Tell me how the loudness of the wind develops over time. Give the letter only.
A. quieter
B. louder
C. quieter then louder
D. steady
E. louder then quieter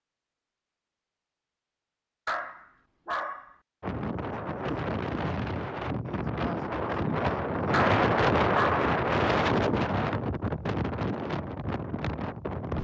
E.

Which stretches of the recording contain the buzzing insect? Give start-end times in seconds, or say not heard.
not heard.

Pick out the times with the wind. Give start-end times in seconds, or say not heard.
3.8-12.7.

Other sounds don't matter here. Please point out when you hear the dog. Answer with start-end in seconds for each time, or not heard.
2.2-3.5, 7.7-8.9.